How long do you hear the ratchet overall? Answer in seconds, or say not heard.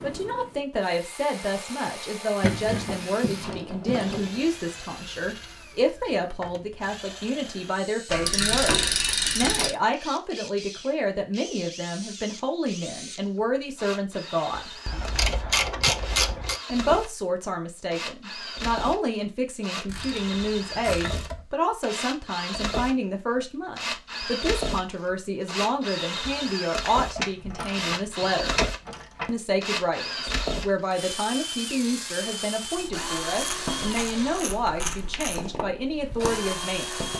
11 s.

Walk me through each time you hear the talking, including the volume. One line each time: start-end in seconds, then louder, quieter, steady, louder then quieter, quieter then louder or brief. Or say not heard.
0.0-14.7 steady
16.6-28.6 steady
29.2-37.0 steady.